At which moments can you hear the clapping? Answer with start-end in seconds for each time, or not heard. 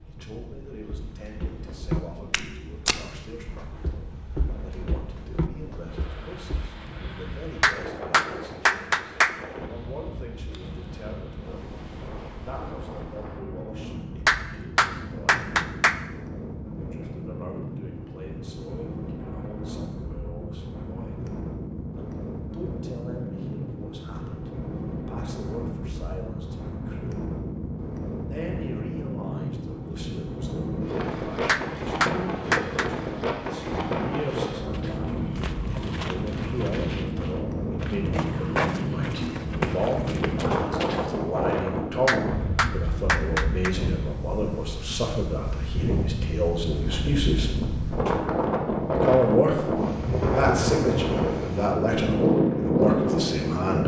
7.6-9.3, 14.2-15.9, 31.4-32.9, 42.0-43.8.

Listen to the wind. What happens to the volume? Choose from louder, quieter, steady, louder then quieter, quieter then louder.
louder.